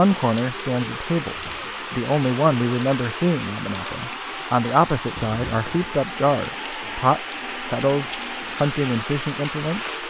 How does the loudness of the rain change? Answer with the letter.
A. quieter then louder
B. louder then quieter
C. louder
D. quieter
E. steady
E.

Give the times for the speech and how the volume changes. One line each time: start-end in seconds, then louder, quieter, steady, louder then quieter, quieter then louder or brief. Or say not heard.
0.0-9.9 steady.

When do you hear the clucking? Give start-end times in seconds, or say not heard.
not heard.